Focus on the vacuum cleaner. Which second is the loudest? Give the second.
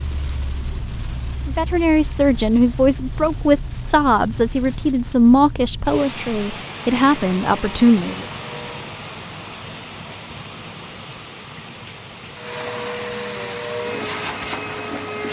14 s.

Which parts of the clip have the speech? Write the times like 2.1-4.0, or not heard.
1.4-8.2.